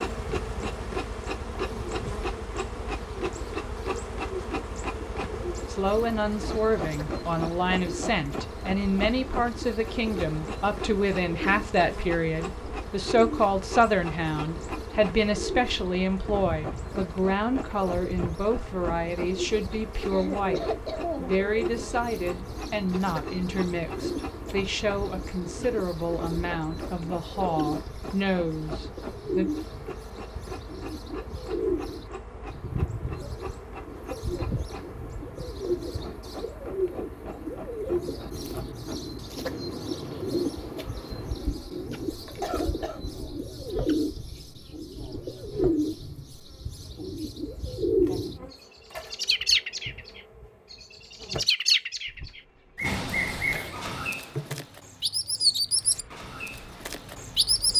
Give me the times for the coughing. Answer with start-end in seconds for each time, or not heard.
20.1-21.4, 42.4-43.0.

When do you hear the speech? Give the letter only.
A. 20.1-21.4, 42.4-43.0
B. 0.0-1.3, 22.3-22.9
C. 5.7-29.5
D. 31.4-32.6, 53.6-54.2
C.